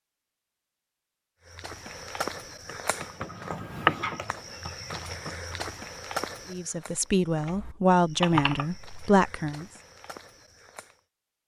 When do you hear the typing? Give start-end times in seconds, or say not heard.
2.5-5.7, 7.5-8.8.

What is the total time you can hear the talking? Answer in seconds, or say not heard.
3 s.